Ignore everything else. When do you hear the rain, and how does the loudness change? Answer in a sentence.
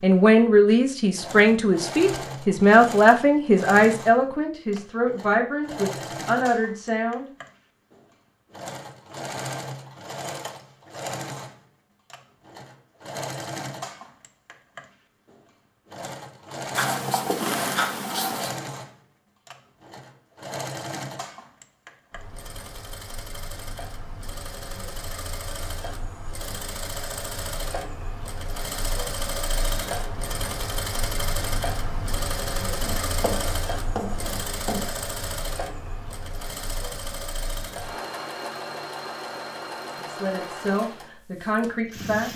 You can't hear the rain here.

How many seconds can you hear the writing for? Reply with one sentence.
You can hear the writing for 4 seconds altogether.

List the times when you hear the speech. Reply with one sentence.
You can hear the speech from 0.0 to 7.2 s and from 40.0 to 42.3 s.